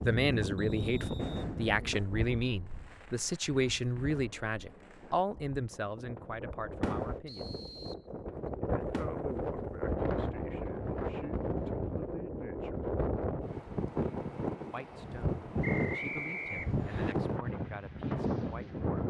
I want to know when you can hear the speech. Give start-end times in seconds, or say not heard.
0.0-7.5, 8.6-12.8, 14.7-19.0.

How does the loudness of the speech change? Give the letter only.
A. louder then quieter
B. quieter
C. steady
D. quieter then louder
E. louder
B.